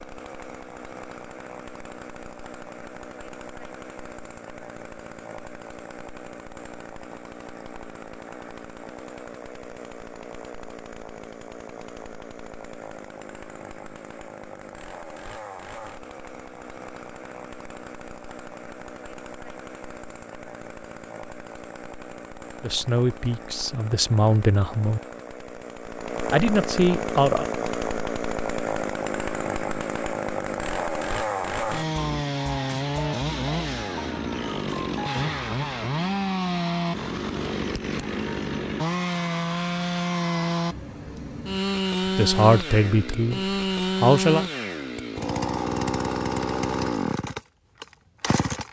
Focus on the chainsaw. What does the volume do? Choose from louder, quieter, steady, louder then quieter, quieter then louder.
louder.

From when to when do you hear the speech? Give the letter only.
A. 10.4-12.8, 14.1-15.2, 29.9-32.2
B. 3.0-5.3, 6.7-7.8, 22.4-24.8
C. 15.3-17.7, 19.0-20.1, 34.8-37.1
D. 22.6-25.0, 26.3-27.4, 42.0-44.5
D.